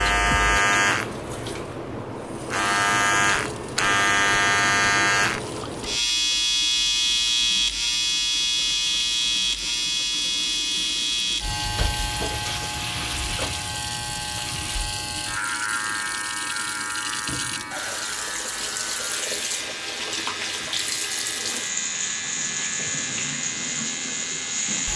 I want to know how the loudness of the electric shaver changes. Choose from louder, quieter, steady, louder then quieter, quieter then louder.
quieter.